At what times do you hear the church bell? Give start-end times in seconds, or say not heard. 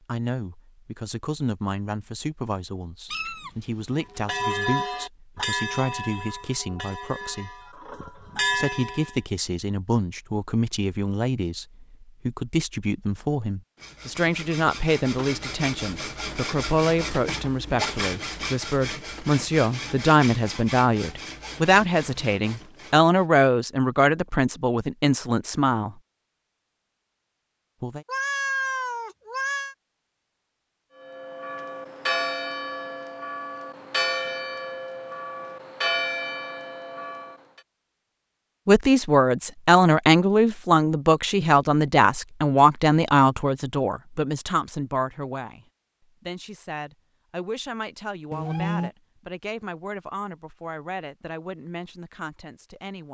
4.2-9.2, 30.9-37.6.